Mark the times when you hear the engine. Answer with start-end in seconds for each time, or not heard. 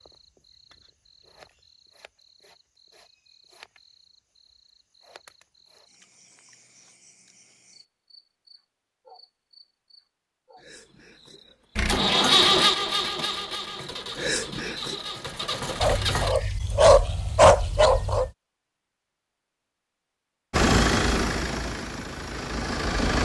11.8-16.4, 20.5-23.2.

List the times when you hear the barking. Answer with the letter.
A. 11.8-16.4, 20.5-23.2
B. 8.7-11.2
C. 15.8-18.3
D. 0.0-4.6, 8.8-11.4
C.